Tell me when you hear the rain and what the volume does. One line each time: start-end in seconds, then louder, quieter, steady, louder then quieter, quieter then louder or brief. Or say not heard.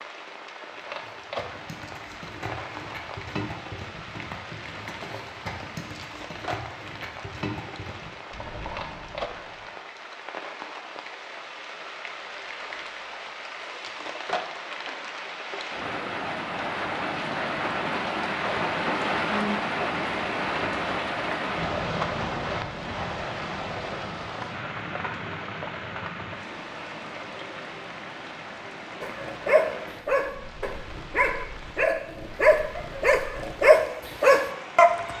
0.0-35.1 louder then quieter.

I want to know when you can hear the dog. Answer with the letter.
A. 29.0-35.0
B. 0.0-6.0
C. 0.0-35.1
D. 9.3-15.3
A.